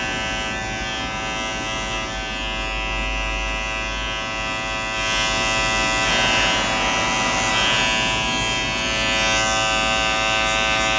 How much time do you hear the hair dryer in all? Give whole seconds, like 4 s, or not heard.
2 s.